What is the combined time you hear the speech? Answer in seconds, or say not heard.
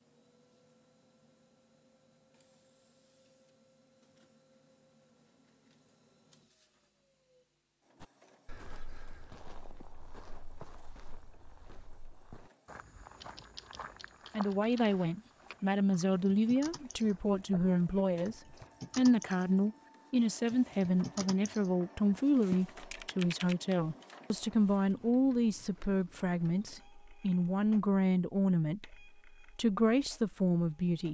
17 s.